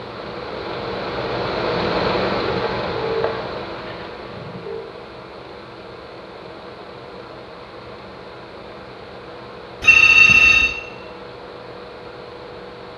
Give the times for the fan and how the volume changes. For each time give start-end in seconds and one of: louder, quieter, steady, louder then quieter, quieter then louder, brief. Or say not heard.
0.0-12.9 quieter.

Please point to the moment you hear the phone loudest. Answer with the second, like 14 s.
10 s.